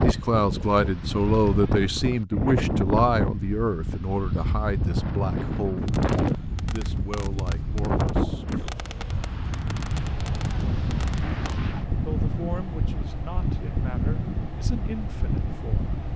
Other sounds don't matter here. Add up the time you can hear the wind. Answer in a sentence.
The wind can be heard for 16 seconds in total.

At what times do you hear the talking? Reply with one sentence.
The talking can be heard from 0.0 to 6.0 s, from 6.7 to 8.7 s and from 12.1 to 15.8 s.